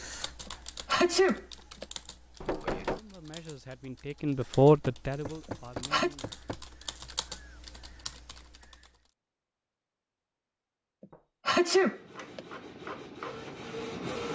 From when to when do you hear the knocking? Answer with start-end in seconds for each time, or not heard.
2.4-3.0, 4.8-6.6, 11.1-11.9.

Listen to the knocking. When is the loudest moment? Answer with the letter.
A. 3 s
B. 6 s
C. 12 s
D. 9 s
A.